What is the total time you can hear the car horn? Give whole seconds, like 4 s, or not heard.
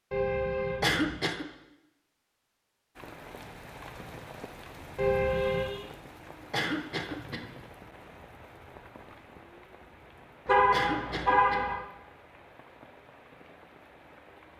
3 s.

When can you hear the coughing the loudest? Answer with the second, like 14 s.
1 s.